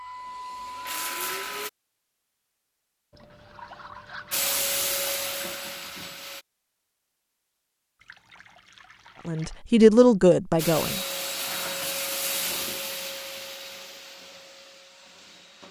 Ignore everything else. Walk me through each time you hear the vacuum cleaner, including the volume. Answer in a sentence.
The vacuum cleaner can be heard briefly from 0.0 to 1.7 s; briefly from 4.3 to 6.5 s; and from 10.6 to 15.6 s, getting quieter.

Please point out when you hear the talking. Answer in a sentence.
You can hear the talking from 9.2 to 11.0 s.